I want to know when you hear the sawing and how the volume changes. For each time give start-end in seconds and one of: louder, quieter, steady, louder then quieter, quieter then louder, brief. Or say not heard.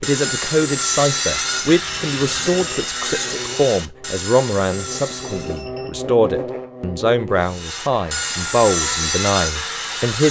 0.0-5.7 quieter
7.4-10.2 brief.